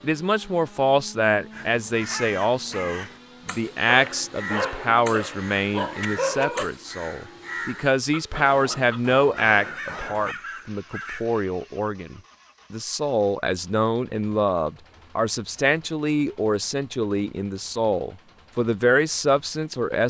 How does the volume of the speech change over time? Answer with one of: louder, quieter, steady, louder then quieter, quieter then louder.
steady.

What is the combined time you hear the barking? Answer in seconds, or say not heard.
3 s.